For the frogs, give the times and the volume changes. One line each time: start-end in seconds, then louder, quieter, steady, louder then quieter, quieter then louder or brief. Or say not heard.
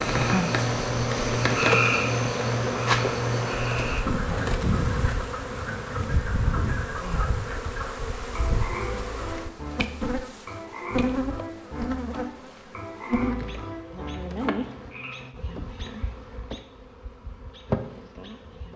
0.0-15.2 quieter.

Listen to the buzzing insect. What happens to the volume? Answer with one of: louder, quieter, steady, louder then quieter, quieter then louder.
quieter.